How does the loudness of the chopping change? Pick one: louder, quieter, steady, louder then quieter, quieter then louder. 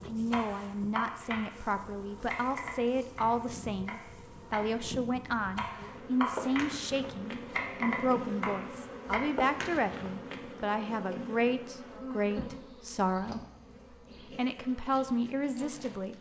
quieter then louder.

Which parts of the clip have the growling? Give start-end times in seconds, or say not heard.
not heard.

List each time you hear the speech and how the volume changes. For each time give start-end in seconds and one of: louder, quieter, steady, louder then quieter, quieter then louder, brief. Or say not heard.
0.1-13.4 steady
14.3-16.1 brief.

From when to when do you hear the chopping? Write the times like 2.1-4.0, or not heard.
0.1-9.2.